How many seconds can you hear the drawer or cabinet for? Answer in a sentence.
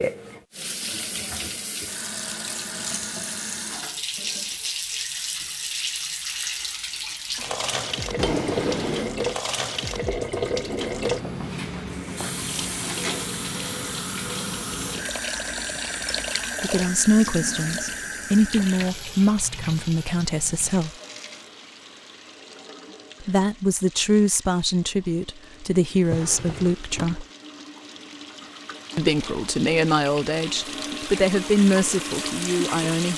The drawer or cabinet can be heard for 2 seconds in total.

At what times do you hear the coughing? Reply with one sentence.
The coughing can't be heard in this clip.